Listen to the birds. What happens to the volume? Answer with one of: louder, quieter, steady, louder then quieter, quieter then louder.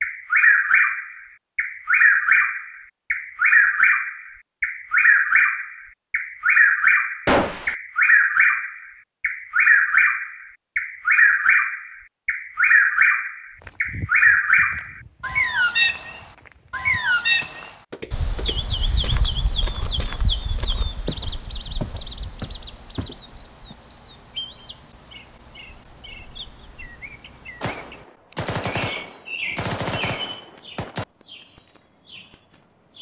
quieter.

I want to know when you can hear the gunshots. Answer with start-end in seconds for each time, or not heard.
7.2-7.8, 27.6-31.1.